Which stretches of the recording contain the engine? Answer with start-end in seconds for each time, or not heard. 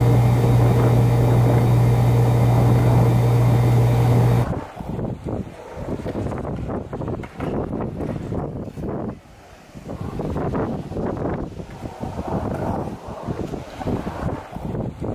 0.0-4.5.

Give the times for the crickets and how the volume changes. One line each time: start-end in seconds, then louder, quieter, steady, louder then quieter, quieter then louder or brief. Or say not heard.
not heard.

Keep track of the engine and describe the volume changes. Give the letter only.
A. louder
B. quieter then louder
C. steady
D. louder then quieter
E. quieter
C.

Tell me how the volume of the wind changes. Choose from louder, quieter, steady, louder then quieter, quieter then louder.
steady.